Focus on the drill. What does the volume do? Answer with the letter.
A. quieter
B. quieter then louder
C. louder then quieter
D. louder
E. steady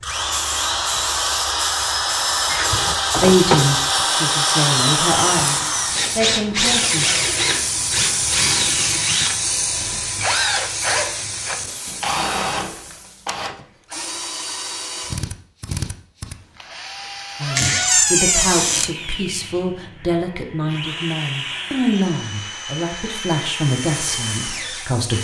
A.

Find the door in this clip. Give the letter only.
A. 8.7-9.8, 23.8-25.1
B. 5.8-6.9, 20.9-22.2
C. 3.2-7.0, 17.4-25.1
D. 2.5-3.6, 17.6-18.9
D.